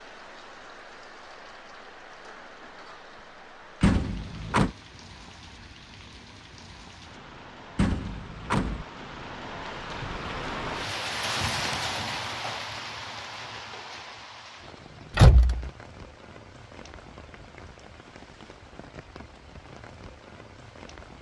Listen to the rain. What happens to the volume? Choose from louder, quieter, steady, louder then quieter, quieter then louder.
louder then quieter.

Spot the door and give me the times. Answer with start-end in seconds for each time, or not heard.
3.8-4.8, 7.8-8.8, 15.2-15.7.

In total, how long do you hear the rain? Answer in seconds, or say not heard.
21 s.